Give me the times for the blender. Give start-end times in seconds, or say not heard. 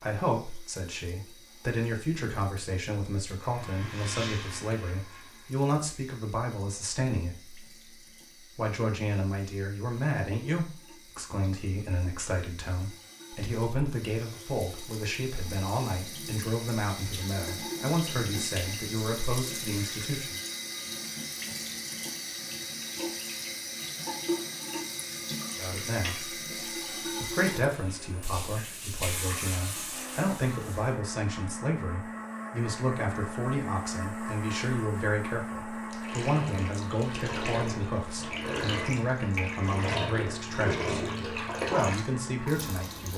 3.4-5.7, 29.9-43.1.